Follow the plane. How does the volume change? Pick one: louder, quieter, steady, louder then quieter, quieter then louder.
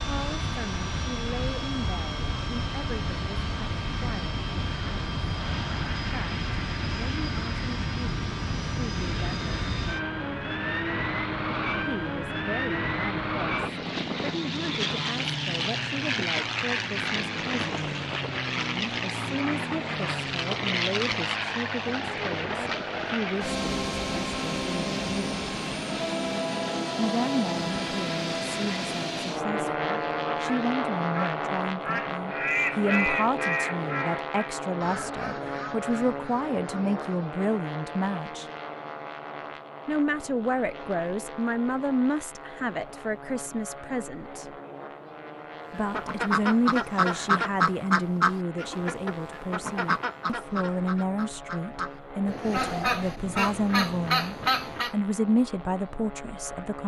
quieter.